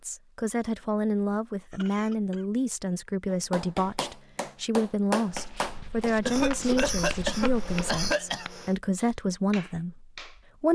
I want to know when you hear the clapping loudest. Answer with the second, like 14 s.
5 s.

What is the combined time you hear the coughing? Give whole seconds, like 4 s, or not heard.
4 s.